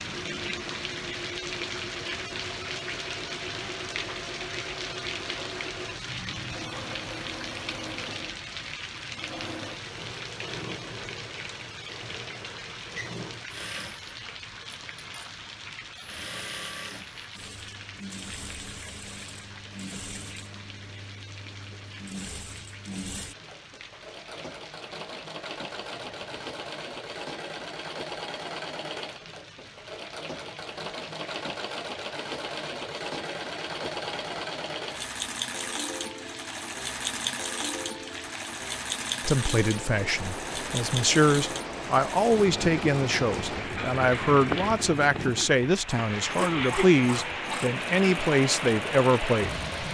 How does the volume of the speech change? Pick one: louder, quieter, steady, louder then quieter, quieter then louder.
steady.